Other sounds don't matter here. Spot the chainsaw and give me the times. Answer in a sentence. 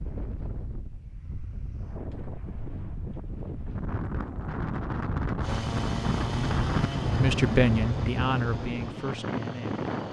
The chainsaw can be heard from 5.4 to 10.0 s.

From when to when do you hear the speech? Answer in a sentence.
You can hear the speech from 7.1 to 9.8 s.